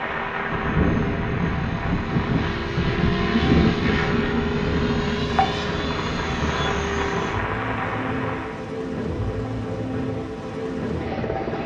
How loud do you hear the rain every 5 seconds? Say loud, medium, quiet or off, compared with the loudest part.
loud, loud, off.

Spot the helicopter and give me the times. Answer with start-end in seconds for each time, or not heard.
0.0-11.6.